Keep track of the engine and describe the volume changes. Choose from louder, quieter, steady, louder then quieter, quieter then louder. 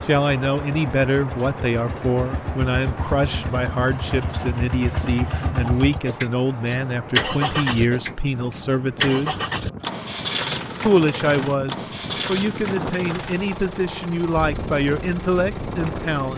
louder then quieter.